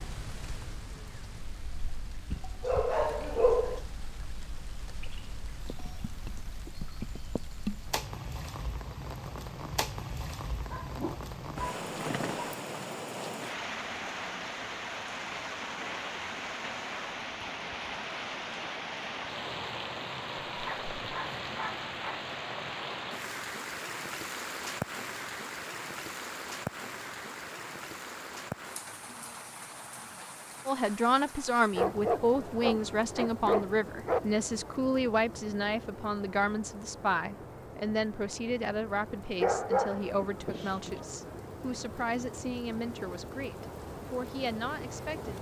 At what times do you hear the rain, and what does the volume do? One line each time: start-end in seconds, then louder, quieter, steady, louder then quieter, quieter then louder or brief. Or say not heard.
0.0-45.3 louder then quieter.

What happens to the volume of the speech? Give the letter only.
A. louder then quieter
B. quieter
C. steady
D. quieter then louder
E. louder
B.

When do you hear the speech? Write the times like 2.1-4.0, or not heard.
30.6-45.3.